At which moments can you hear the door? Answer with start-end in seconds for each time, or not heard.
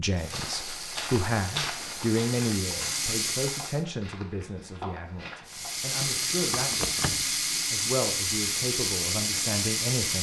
6.7-7.3.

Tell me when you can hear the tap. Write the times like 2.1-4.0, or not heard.
0.0-3.9, 5.5-10.1.